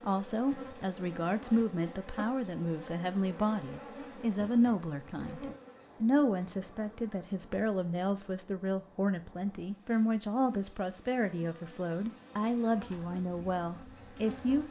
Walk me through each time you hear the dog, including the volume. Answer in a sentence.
The dog can't be heard in this clip.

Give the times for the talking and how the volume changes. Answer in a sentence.
You can hear the talking from 0.0 to 14.6 s, at a steady volume.